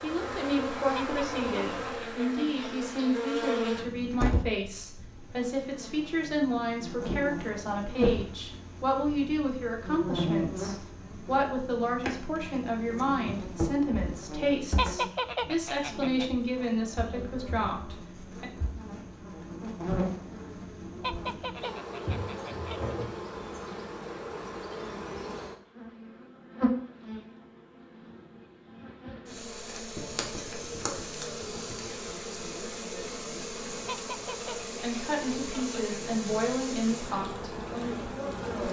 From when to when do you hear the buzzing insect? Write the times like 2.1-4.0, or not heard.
0.0-38.6.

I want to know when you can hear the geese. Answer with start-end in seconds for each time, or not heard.
0.9-2.9, 14.8-16.3, 21.0-22.9, 33.9-35.8.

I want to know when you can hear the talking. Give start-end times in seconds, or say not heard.
0.0-18.4, 34.8-38.6.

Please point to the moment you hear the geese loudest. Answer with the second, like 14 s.
15 s.